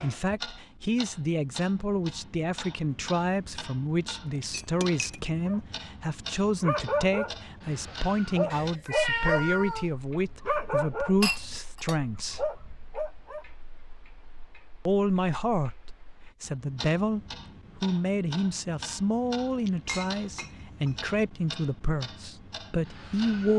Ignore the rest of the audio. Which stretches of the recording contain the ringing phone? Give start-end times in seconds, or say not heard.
not heard.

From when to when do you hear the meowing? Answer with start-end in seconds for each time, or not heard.
8.5-9.9.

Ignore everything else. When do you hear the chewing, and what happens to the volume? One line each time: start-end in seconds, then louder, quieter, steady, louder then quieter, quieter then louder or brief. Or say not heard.
not heard.